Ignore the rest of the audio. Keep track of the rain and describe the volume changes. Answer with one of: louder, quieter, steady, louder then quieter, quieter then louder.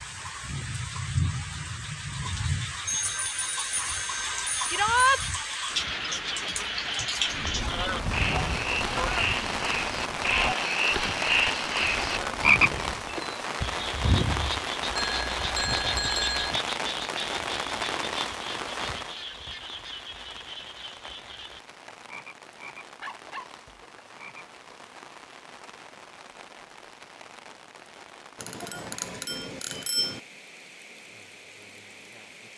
quieter.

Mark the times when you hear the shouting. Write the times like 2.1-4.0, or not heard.
4.7-5.2.